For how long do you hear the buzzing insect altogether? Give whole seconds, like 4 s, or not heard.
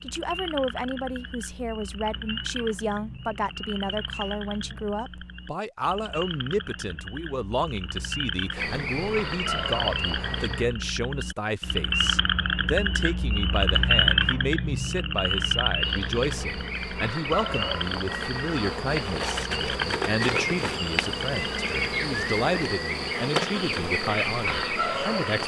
12 s.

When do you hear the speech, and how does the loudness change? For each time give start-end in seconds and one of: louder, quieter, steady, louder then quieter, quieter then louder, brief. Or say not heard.
0.0-25.4 steady.